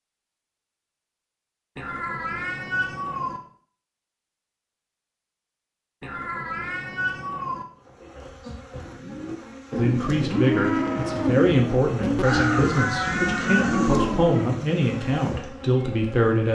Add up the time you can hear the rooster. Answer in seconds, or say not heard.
2 s.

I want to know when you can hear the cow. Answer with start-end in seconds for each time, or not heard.
8.8-14.8.